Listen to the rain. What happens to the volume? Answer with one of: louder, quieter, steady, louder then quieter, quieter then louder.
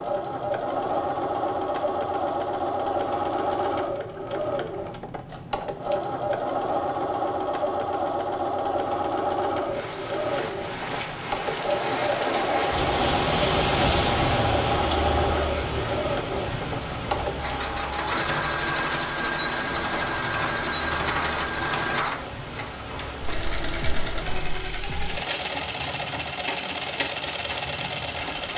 quieter.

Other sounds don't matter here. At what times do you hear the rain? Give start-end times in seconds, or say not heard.
9.5-28.5.